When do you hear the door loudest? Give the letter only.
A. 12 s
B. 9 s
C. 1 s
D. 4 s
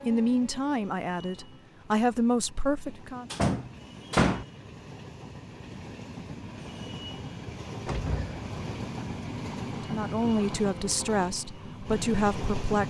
D.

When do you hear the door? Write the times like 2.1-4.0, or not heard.
3.3-4.5, 7.8-8.4.